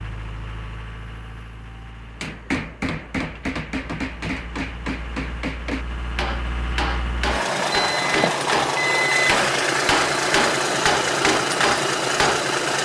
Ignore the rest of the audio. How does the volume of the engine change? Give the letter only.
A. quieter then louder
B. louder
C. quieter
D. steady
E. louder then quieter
B.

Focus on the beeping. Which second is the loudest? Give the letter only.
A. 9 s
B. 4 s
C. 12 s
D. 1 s
A.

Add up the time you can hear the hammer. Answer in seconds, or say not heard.
10 s.